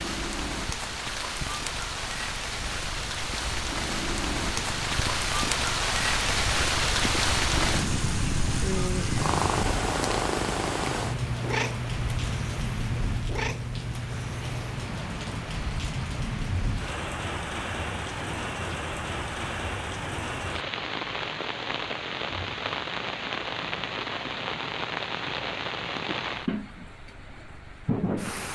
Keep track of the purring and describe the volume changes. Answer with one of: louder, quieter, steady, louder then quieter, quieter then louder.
louder then quieter.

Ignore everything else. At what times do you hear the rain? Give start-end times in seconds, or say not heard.
0.0-28.5.